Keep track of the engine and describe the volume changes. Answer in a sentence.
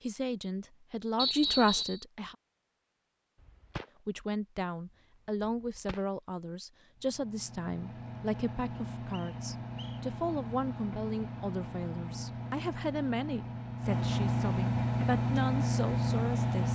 The loudness of the engine goes up.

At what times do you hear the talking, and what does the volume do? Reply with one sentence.
You can hear the talking briefly from 0.0 to 2.4 s; and from 4.0 to 16.7 s, at a steady volume.